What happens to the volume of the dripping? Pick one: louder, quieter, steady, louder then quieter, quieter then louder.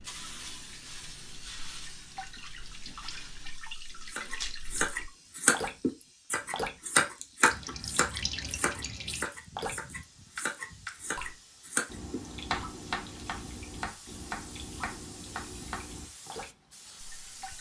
louder then quieter.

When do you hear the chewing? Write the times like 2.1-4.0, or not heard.
not heard.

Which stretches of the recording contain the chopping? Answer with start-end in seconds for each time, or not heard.
4.1-16.3.